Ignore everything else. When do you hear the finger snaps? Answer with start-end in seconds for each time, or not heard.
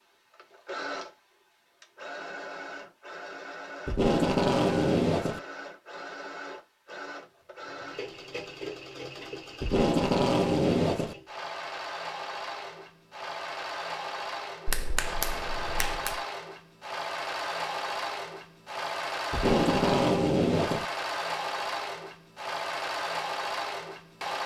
14.7-16.2.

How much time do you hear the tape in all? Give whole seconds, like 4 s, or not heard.
5 s.